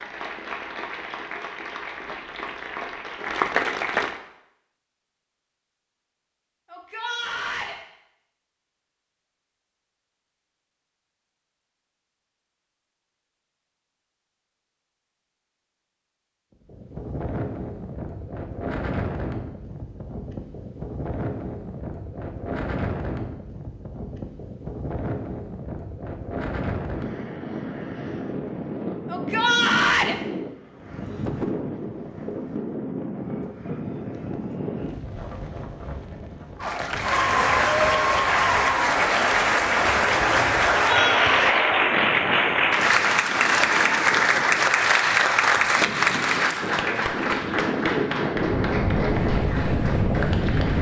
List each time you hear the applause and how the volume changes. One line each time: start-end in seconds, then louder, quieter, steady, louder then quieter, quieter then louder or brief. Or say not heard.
0.0-4.2 louder
36.6-50.7 quieter.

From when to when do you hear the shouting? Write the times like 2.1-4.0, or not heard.
6.7-7.8, 29.1-30.1, 40.8-41.6.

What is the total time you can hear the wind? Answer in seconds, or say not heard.
34 s.